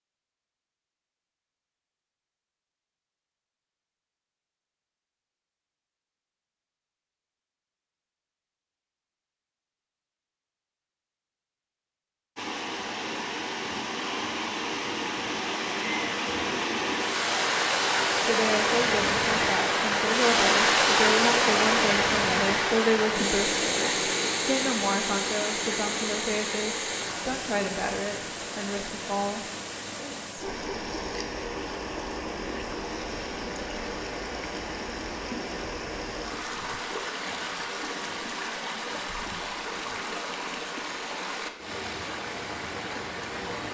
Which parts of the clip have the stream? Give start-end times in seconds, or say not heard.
12.3-43.6.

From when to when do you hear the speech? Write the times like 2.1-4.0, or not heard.
18.2-29.4.